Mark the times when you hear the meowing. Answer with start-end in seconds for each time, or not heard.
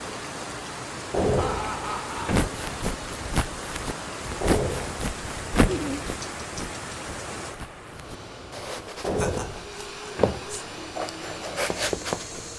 not heard.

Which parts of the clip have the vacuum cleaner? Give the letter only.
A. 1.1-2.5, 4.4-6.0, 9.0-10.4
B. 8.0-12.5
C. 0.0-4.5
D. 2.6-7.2
B.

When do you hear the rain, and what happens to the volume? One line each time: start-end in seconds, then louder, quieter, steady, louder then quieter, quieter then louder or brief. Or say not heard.
0.0-12.5 quieter.